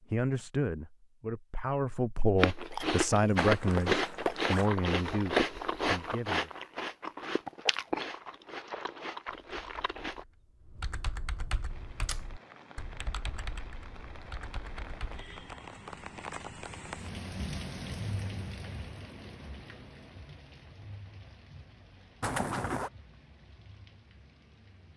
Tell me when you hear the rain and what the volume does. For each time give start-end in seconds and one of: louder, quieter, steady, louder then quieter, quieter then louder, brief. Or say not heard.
11.7-24.9 louder then quieter.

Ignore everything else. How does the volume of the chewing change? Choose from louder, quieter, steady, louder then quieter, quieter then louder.
quieter.